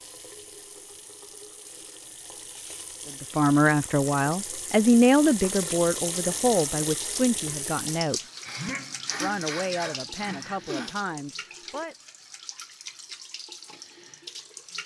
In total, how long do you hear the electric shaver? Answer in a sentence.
The electric shaver can't be heard in this clip.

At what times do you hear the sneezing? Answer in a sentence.
You can hear the sneezing from 8.4 to 10.9 s.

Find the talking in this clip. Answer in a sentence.
You can hear the talking from 3.2 to 8.2 s and from 9.2 to 11.9 s.